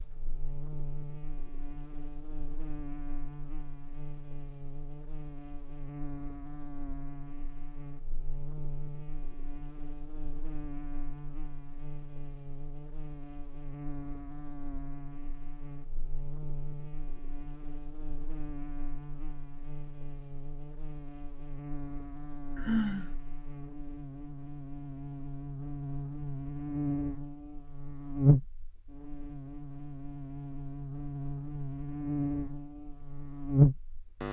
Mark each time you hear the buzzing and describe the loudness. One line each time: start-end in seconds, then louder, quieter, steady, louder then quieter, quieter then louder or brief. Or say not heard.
0.0-34.2 louder.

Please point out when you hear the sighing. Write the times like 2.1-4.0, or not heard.
22.6-23.1.